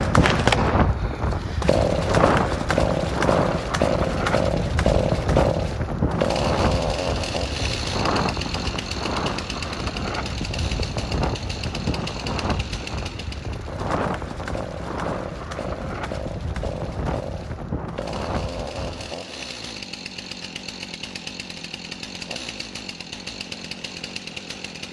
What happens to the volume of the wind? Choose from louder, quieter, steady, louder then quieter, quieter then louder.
quieter.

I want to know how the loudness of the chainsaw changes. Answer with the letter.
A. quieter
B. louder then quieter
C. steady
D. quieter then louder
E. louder
A.